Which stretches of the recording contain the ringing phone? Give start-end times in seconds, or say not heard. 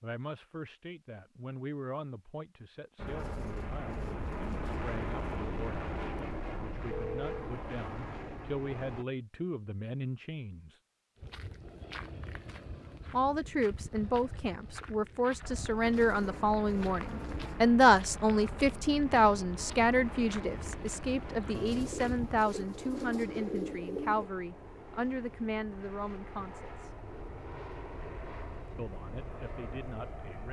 6.9-7.5.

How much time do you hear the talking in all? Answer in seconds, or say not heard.
26 s.